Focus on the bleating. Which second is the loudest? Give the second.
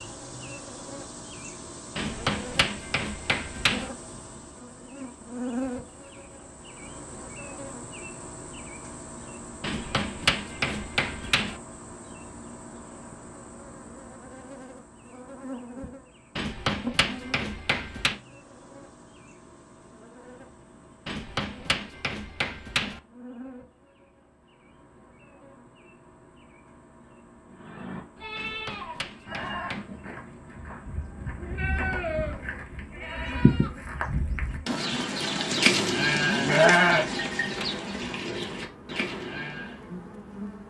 37 s.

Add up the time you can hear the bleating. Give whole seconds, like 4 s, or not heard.
12 s.